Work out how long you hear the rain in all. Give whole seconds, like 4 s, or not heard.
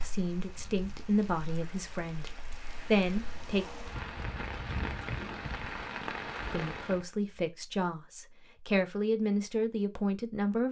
7 s.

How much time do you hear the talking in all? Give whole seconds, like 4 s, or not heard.
8 s.